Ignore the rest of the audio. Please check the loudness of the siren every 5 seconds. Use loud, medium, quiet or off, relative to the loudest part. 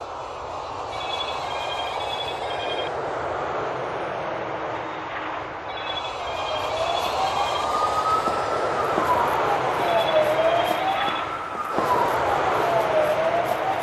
off, loud, loud.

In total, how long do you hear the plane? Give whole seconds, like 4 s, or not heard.
14 s.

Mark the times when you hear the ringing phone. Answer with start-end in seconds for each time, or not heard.
0.9-2.9, 5.7-7.7, 9.8-11.2.